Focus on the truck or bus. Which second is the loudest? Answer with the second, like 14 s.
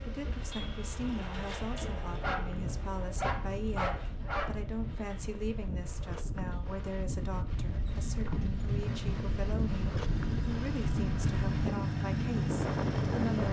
13 s.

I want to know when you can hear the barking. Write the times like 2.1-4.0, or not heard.
2.0-4.5.